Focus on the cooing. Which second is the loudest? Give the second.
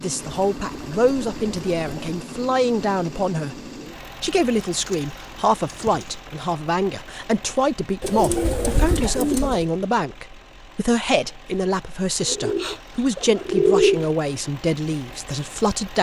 14 s.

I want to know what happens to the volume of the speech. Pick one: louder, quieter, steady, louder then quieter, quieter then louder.
steady.